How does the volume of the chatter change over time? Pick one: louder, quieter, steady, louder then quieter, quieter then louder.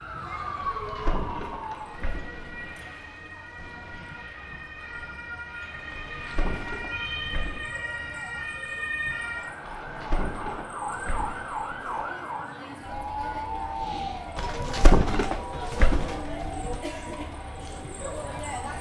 quieter then louder.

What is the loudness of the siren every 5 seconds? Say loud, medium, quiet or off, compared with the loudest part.
loud, loud, loud, medium.